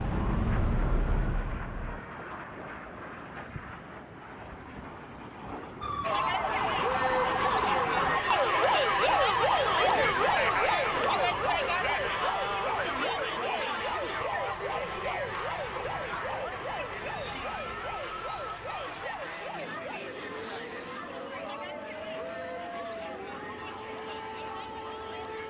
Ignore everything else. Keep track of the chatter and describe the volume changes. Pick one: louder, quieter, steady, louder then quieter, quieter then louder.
quieter.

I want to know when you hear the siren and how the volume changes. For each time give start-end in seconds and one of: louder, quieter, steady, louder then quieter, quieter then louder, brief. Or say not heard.
0.0-2.1 brief
5.8-25.4 quieter.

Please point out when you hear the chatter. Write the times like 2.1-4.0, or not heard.
6.0-25.4.